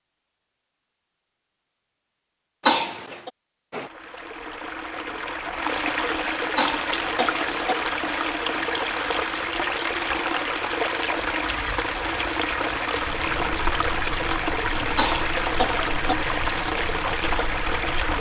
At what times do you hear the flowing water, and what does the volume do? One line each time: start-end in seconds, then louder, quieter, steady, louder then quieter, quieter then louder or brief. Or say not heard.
3.7-18.1 steady.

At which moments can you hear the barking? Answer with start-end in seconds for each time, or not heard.
not heard.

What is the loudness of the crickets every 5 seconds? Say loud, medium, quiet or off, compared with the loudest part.
off, loud, loud, loud.